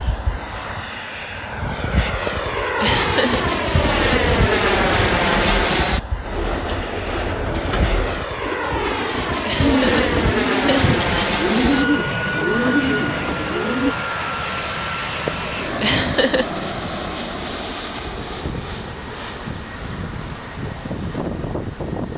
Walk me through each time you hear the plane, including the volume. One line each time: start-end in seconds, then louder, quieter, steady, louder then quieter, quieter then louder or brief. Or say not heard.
0.0-22.1 quieter.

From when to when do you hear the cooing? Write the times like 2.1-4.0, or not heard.
3.3-13.9.